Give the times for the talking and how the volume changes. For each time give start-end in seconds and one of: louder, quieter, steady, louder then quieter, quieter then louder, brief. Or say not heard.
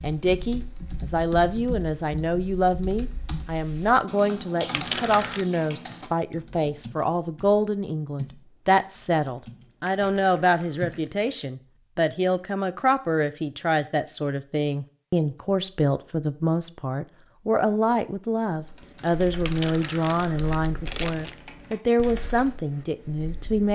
0.0-23.7 steady.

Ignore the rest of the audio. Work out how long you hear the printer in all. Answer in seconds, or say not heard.
not heard.